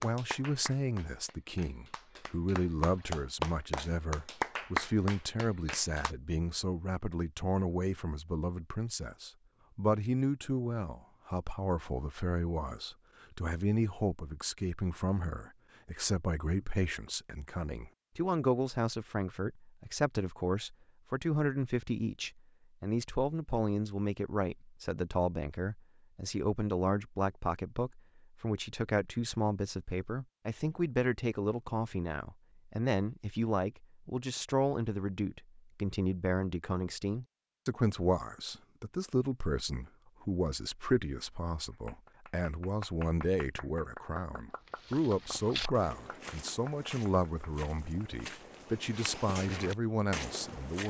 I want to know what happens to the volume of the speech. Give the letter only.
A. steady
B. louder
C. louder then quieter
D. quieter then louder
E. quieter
A.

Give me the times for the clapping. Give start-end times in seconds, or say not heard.
0.0-6.2, 41.7-48.0.